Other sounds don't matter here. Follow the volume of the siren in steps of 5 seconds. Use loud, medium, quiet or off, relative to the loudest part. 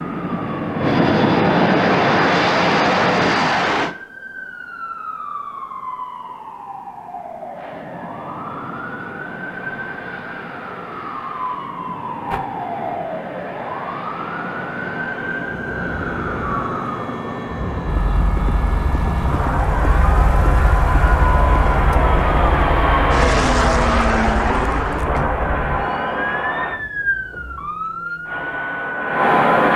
medium, medium, loud, loud, loud, loud.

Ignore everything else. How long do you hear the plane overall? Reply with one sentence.
The plane can be heard for 25 seconds in total.